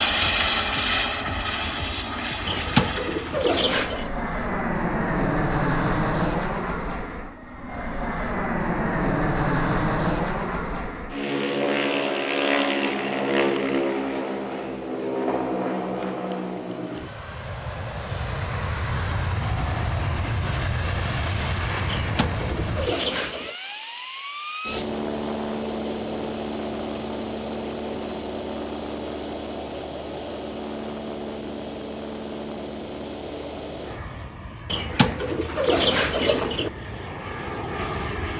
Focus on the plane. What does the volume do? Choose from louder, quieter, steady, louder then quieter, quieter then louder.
quieter.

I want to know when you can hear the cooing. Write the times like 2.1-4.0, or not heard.
2.5-4.1, 21.9-23.6, 34.6-36.7.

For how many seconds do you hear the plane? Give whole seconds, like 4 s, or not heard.
38 s.